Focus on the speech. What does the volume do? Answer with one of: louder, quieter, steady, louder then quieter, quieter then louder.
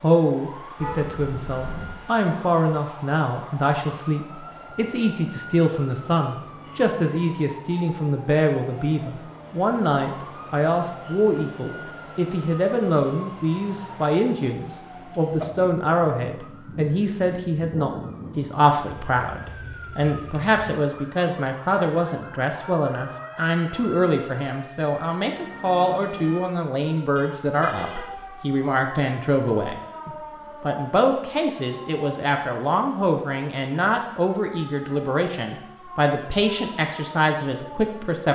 steady.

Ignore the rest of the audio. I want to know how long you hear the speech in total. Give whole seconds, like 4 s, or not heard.
38 s.